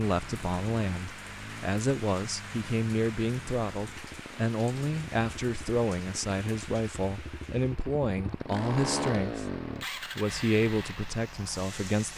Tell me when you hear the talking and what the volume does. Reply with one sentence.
You can hear the talking from 0.0 to 12.1 s, at a steady volume.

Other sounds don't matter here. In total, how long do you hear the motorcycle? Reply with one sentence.
The motorcycle can be heard for 12 seconds in total.